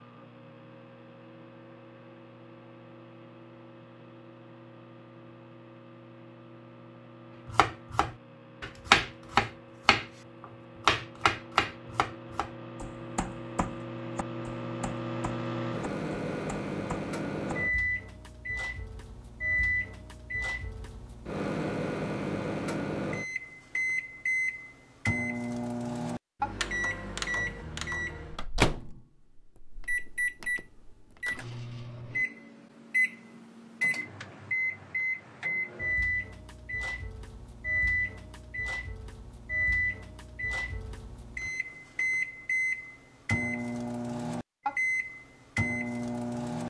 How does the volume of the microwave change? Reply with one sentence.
The loudness of the microwave goes up.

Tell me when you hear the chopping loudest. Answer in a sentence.
The loudest moment of the chopping is at 9 seconds.